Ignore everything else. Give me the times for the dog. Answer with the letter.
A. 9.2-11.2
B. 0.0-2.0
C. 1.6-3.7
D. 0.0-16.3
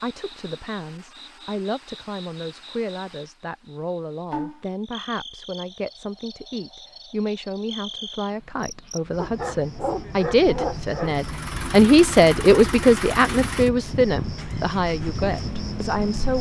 A.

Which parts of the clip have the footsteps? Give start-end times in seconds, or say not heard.
not heard.